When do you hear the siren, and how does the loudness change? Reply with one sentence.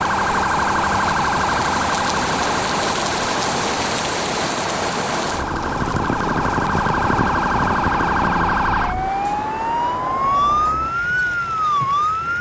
The siren can be heard from 0.0 to 12.3 s, getting quieter then louder.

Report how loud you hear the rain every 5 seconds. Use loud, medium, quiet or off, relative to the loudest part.
loud, loud, medium.